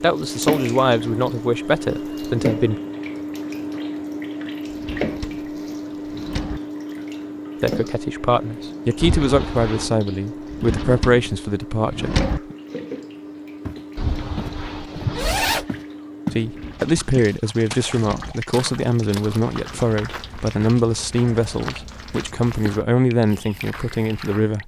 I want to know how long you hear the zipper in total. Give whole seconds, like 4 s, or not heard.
3 s.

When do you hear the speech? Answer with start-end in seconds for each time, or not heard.
0.0-2.8, 7.6-12.6, 16.3-24.6.